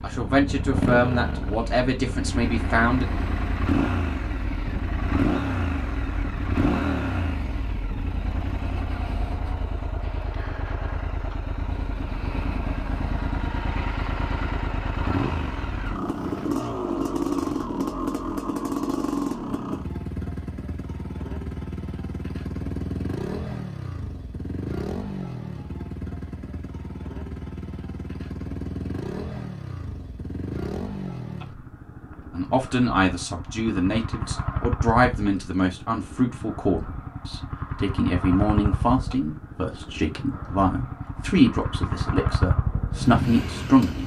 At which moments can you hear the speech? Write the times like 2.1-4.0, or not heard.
0.0-3.0, 32.3-44.0.